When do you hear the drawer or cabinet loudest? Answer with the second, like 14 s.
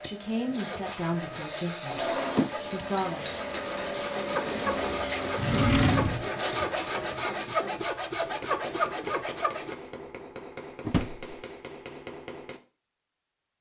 6 s.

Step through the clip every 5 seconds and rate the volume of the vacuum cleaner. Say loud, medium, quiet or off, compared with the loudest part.
loud, loud, off.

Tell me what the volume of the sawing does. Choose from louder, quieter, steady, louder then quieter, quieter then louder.
louder.